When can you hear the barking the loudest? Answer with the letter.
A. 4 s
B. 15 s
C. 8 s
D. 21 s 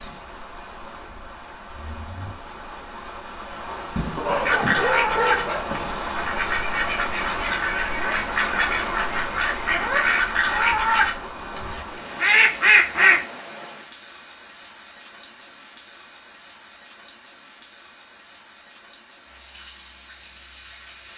A.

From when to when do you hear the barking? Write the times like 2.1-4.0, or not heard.
4.0-5.7.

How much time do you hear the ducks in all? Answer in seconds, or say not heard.
9 s.